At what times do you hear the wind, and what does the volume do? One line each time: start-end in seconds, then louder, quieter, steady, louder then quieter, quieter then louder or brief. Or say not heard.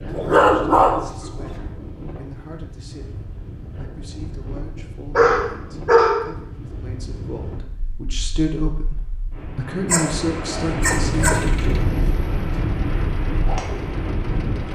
0.0-14.7 louder.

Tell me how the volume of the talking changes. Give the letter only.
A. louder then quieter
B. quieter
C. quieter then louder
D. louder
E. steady
D.